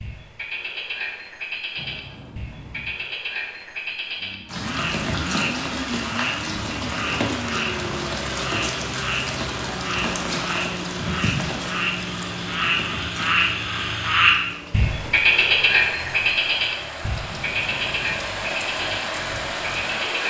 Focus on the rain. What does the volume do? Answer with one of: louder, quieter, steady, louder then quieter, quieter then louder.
quieter then louder.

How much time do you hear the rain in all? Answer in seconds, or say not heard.
16 s.